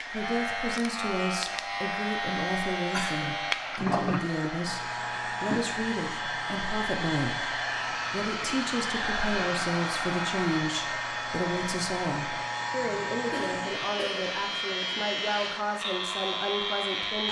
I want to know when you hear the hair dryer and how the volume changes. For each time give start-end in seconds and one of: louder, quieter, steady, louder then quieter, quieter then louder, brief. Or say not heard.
0.0-17.2 louder then quieter.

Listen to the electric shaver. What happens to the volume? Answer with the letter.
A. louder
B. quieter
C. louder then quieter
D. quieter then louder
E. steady
D.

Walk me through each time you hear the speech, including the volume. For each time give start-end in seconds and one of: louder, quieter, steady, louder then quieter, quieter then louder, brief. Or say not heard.
0.1-17.2 steady.